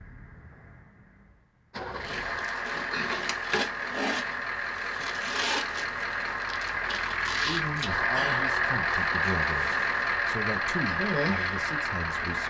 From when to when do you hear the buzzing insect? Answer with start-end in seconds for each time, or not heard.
2.0-12.4.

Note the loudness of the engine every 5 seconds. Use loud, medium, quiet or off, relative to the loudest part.
medium, loud, loud.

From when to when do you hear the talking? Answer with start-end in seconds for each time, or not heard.
7.4-12.4.